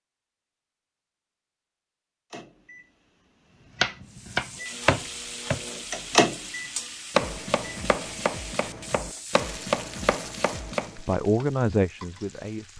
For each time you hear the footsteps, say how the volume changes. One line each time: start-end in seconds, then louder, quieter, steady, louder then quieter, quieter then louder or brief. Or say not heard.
not heard.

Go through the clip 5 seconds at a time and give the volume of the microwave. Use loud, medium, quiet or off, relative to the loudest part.
quiet, loud, off.